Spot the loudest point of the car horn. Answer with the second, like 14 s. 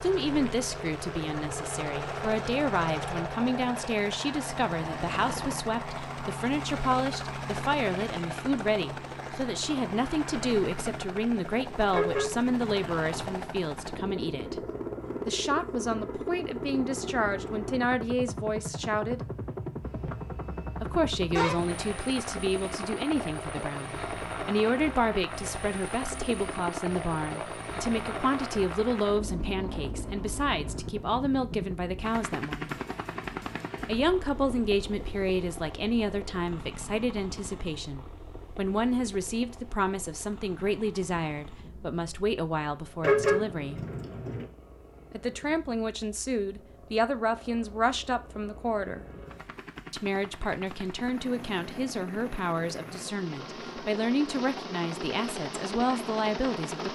43 s.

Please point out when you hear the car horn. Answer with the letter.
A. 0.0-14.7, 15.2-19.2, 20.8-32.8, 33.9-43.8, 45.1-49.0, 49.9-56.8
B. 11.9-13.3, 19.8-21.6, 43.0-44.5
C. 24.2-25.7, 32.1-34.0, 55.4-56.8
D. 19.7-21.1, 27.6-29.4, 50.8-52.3
B.